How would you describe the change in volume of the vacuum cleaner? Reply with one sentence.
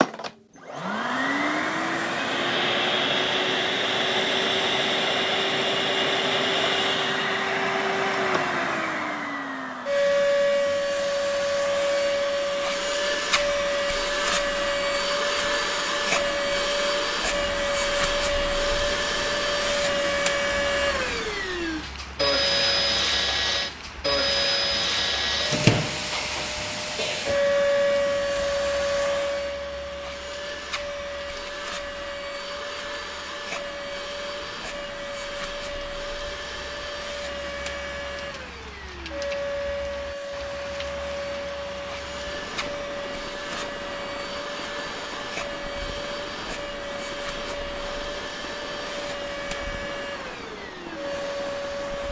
The volume of the vacuum cleaner goes down.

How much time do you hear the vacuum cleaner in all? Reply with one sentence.
You can hear the vacuum cleaner for 52 seconds altogether.